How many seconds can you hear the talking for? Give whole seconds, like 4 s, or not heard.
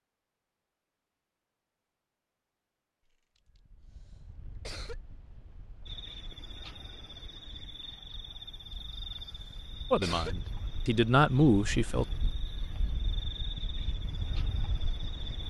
2 s.